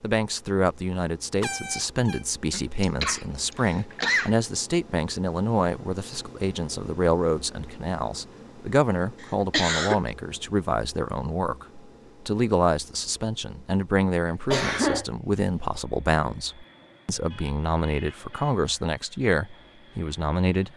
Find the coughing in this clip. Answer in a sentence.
The coughing can be heard from 2.5 to 4.3 s, from 9.2 to 10.0 s and from 14.5 to 15.1 s.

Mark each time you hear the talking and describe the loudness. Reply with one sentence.
You can hear the talking from 0.0 to 20.7 s, at a steady volume.